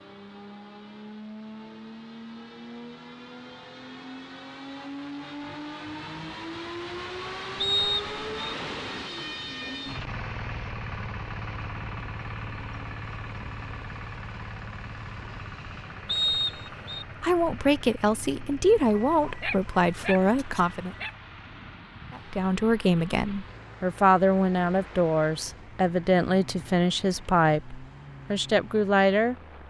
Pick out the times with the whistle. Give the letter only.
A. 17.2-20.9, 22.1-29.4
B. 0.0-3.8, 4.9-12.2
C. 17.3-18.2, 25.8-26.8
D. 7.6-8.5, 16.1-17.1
D.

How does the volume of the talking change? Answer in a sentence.
The volume of the talking stays about the same.